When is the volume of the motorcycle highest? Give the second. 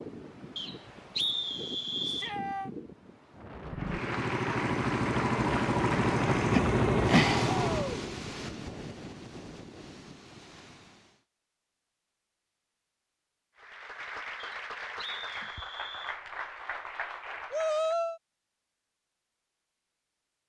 7 s.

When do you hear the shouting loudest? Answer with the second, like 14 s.
18 s.